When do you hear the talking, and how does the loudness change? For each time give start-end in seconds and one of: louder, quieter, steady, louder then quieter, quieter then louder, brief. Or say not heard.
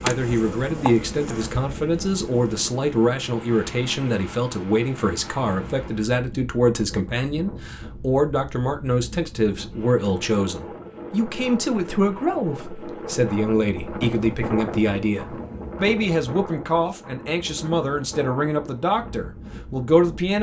0.0-20.3 steady.